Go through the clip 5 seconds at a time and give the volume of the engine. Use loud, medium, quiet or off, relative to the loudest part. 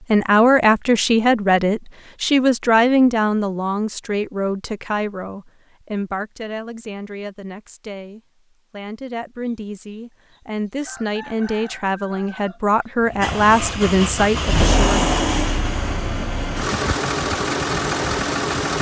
off, off, loud, loud.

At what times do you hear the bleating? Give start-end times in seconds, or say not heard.
not heard.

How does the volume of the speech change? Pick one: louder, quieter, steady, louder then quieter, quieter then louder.
quieter then louder.